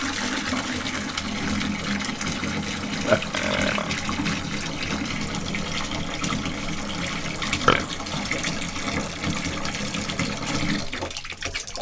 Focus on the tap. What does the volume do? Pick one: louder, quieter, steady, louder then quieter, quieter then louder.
steady.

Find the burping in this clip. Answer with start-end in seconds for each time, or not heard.
3.0-3.9, 7.7-8.3.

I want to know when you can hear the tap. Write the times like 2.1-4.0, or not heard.
0.0-11.7.